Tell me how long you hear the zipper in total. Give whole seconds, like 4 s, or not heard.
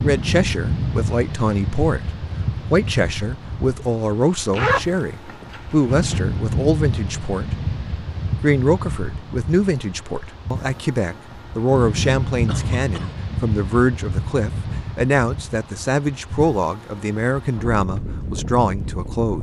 2 s.